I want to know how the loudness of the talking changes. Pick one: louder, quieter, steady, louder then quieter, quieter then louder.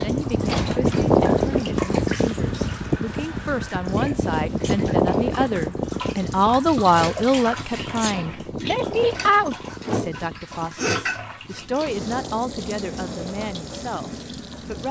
louder then quieter.